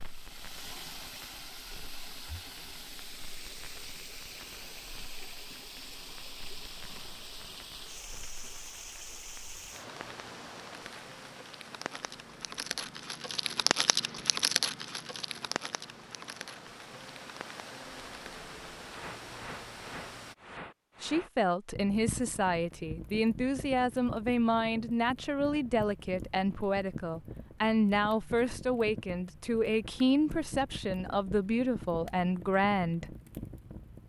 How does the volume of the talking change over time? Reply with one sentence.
The volume of the talking stays about the same.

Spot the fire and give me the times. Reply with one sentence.
You can hear the fire from 0.0 to 34.0 s.